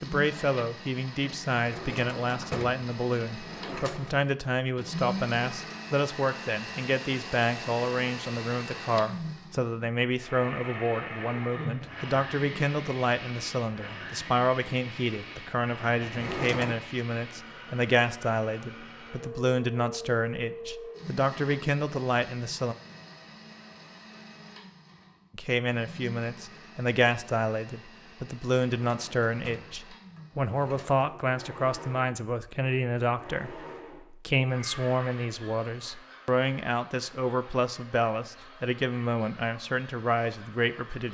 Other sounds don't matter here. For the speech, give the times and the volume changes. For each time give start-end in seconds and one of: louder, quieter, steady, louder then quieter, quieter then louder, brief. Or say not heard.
0.0-22.8 steady
25.4-41.1 steady.